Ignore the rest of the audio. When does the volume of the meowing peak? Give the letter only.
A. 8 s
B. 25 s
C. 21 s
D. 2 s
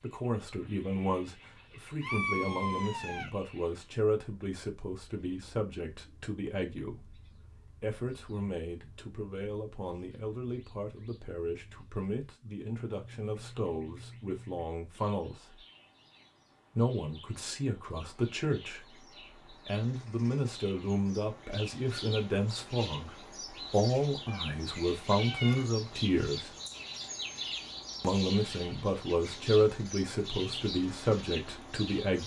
D.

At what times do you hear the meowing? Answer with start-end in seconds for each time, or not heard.
2.0-3.3, 24.2-26.1.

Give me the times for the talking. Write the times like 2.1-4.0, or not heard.
0.0-15.6, 16.8-26.6, 28.0-32.2.